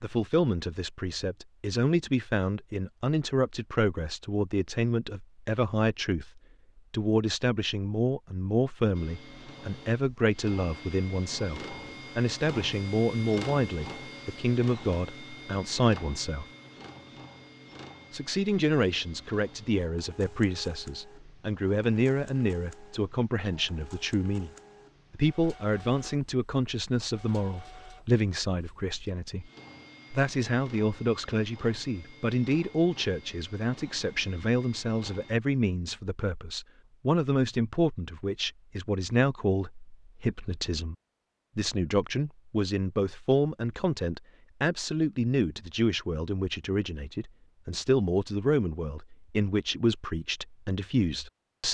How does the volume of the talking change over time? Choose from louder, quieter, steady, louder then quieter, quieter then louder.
steady.